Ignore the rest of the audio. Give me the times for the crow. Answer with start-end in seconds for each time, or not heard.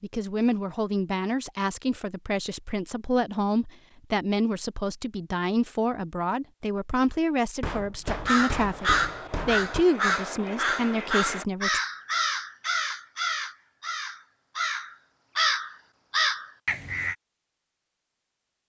8.1-17.1.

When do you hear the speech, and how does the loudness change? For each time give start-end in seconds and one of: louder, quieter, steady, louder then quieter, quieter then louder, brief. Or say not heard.
0.0-11.8 steady.